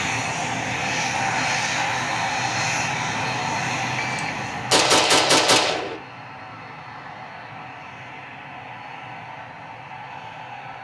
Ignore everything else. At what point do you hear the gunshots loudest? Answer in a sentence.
The loudest moment of the gunshots is at 5 seconds.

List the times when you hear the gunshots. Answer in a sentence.
You can hear the gunshots from 4.0 to 6.0 s.